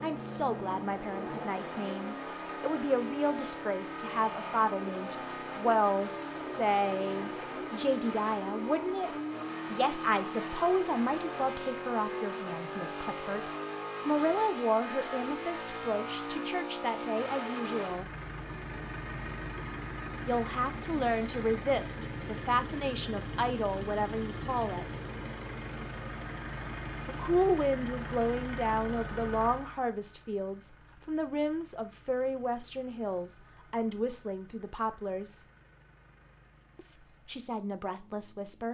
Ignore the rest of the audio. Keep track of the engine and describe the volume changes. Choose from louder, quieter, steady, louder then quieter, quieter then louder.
quieter.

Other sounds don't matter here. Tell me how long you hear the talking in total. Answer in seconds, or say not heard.
32 s.